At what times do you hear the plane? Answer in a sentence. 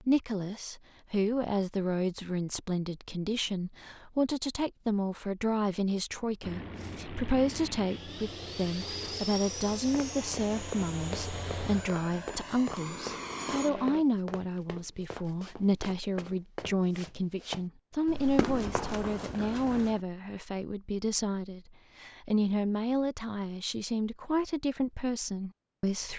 You can hear the plane from 6.4 to 14.1 s.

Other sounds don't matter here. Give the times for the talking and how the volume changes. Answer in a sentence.
The talking can be heard from 0.0 to 26.1 s, at a steady volume.